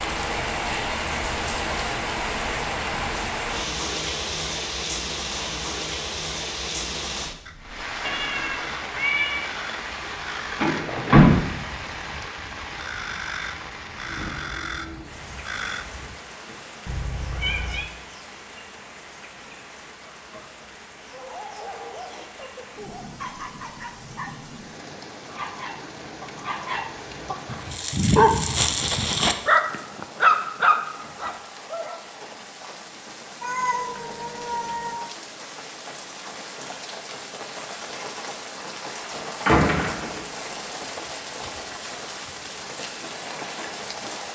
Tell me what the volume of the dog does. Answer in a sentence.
The loudness of the dog goes up.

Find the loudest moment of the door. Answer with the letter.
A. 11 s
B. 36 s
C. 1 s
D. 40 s
A.